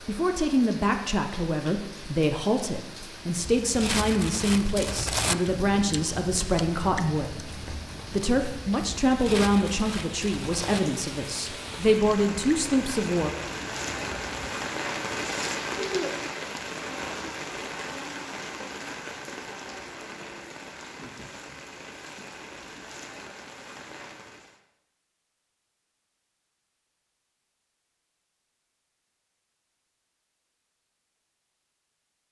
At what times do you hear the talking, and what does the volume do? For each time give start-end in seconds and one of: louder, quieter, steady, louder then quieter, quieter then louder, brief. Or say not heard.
0.1-13.3 steady.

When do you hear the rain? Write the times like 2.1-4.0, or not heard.
0.0-24.6.